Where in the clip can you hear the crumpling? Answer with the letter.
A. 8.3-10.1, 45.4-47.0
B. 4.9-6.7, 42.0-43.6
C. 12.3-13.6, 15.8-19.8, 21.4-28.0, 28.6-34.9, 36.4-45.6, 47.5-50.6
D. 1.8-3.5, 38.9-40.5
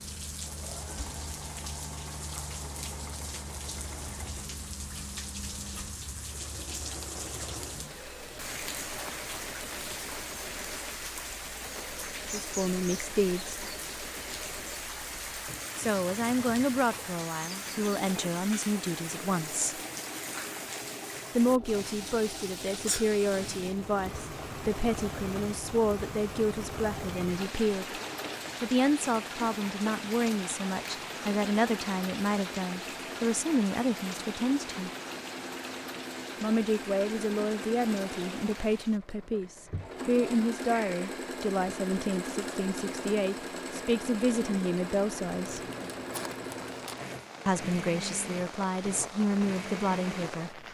A.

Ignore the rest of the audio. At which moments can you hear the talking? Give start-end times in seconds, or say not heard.
12.3-13.6, 15.8-19.8, 21.4-28.0, 28.6-34.9, 36.4-45.6, 47.5-50.6.